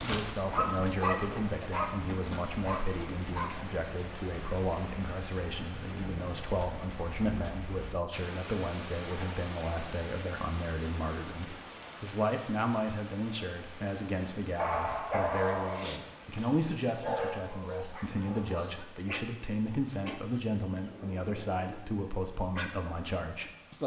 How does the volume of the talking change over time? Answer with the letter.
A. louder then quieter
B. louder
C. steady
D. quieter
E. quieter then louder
C.